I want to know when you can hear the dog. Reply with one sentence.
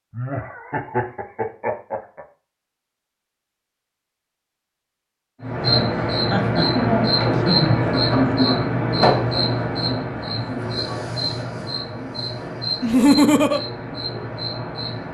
The dog can't be heard in this clip.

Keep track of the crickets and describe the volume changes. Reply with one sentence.
The volume of the crickets goes down.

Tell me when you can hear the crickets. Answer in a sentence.
The crickets can be heard from 5.5 to 15.0 s.